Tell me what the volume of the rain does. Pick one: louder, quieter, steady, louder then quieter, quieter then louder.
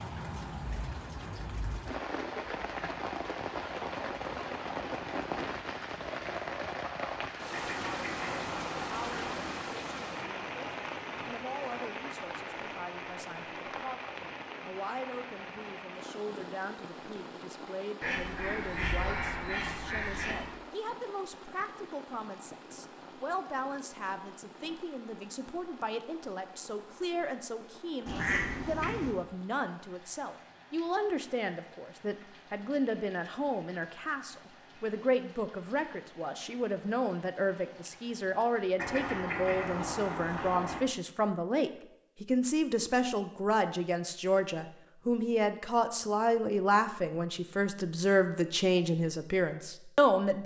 quieter.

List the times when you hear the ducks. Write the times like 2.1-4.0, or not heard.
7.5-9.6, 18.0-20.6, 28.1-29.1, 38.8-40.8.